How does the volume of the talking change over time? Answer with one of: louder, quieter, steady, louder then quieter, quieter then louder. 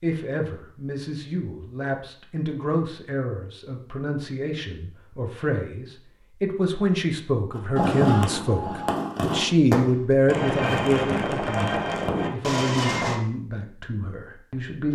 louder then quieter.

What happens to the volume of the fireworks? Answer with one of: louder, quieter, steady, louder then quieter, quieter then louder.
steady.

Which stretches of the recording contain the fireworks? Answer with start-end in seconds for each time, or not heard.
7.5-13.2.